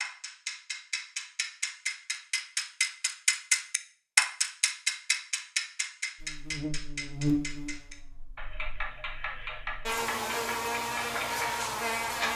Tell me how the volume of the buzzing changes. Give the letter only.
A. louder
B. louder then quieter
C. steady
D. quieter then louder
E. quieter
D.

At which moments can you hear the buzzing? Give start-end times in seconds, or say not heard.
6.2-12.3.